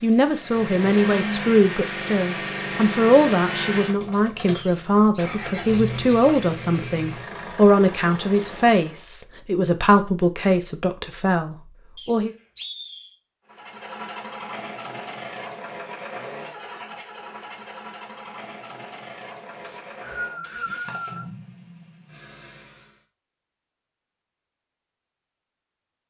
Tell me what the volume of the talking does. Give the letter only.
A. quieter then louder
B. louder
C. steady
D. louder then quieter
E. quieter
C.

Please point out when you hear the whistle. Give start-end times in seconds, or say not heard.
4.5-5.2, 11.9-13.2, 19.6-21.2.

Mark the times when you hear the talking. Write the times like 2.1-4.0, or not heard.
0.0-12.3.